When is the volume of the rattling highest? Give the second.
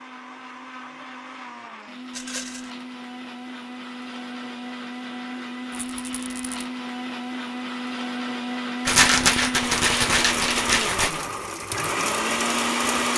9 s.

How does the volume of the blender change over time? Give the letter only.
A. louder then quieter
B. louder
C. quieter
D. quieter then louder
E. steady
B.